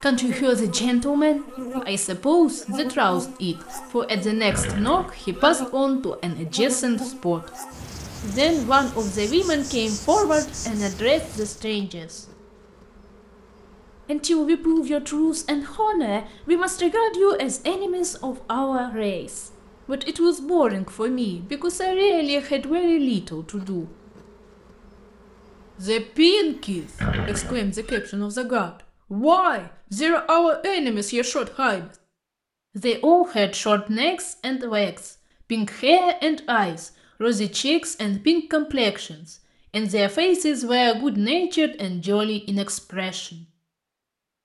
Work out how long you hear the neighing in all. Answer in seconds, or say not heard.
2 s.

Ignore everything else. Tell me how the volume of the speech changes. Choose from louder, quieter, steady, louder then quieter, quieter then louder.
steady.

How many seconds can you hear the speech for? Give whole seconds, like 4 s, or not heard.
38 s.